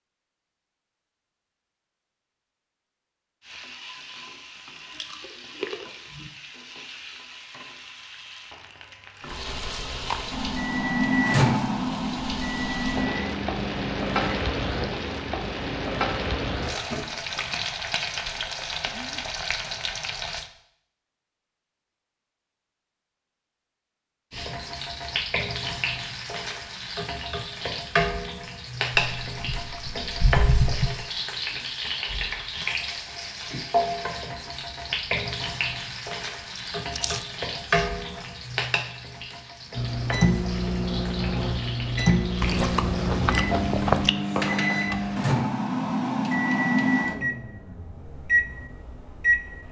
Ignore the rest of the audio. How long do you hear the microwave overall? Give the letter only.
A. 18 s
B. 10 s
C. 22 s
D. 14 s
D.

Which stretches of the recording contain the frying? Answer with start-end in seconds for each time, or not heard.
3.4-20.5, 24.3-45.2.